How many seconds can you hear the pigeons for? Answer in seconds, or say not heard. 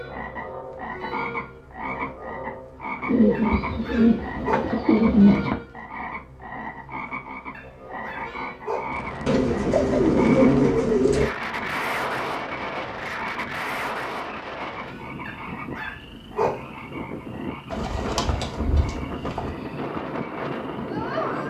6 s.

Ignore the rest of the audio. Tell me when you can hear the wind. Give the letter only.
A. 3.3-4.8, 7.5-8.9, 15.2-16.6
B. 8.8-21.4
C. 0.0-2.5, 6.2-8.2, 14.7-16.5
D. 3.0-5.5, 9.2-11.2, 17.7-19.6
B.